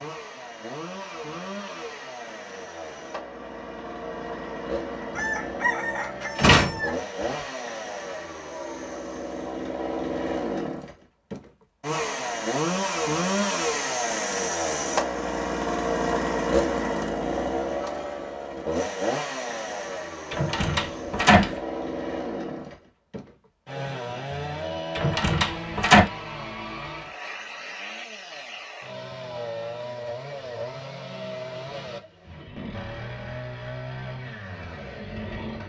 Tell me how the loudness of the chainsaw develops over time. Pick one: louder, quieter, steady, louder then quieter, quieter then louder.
louder then quieter.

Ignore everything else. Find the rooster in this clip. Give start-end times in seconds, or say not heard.
5.1-7.0.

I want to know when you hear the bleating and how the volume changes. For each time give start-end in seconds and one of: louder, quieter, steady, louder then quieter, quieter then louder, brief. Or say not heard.
not heard.